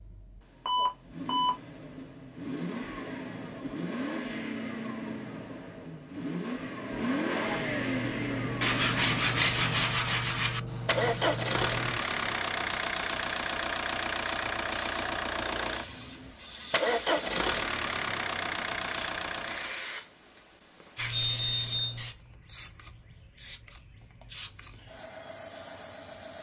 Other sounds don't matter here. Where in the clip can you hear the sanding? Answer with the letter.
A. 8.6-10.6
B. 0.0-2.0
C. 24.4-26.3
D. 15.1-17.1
A.